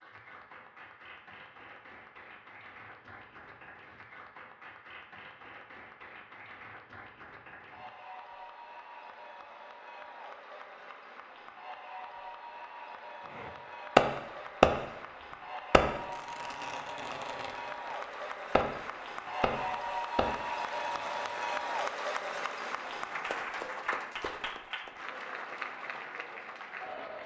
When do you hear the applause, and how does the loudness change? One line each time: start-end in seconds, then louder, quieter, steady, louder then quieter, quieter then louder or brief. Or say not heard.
0.0-27.2 louder.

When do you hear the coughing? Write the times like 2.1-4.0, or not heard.
not heard.